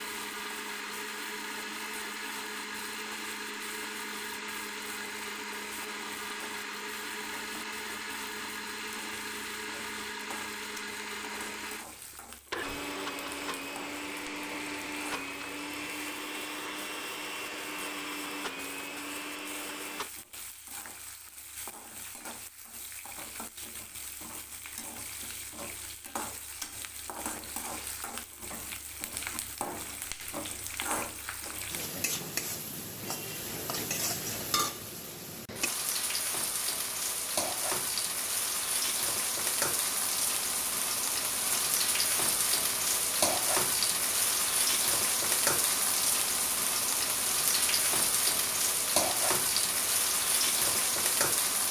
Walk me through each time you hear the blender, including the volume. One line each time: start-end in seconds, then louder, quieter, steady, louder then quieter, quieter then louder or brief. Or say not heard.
0.0-20.1 steady.